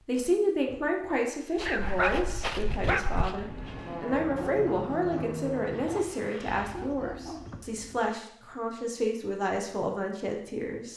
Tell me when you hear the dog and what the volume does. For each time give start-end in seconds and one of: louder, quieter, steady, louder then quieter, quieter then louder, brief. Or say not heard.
1.6-8.1 quieter.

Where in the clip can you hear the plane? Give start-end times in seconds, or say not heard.
3.3-6.8.